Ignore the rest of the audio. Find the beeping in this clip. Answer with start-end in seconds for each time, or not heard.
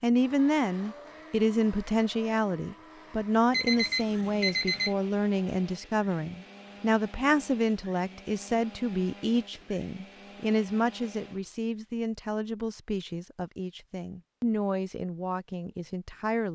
3.5-5.0.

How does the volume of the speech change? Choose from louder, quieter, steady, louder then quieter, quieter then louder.
quieter.